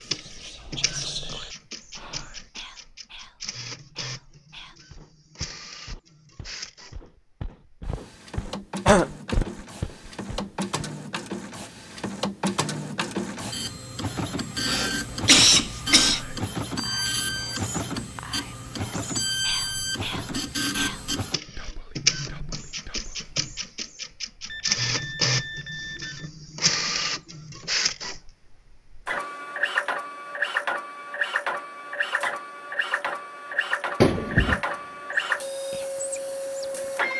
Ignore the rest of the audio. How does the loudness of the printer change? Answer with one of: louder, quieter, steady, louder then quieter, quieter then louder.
louder.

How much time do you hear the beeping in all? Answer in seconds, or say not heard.
2 s.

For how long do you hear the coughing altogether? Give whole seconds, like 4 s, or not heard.
3 s.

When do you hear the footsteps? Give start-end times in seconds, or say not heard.
4.9-10.8.